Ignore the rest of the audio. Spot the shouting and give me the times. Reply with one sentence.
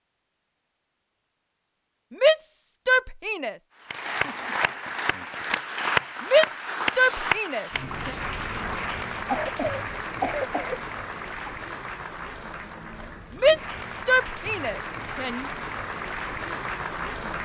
You can hear the shouting from 2.1 to 3.5 s, from 6.2 to 8.2 s and from 13.4 to 15.4 s.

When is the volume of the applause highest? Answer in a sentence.
The volume of the applause peaks at 6 seconds.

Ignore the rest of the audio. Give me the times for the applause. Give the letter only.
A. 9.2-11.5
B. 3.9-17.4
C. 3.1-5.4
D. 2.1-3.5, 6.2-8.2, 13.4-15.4
B.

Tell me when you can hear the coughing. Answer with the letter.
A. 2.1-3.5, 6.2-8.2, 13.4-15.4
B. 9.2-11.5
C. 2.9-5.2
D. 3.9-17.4
B.